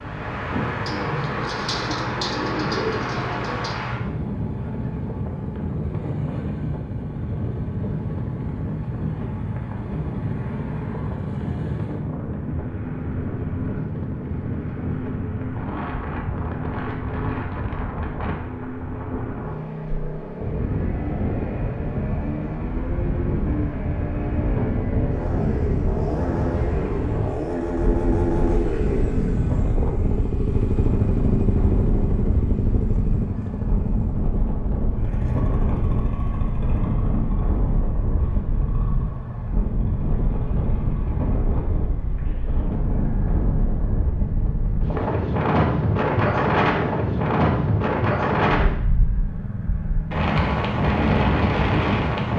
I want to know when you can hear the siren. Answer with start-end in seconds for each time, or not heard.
not heard.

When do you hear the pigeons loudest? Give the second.
3 s.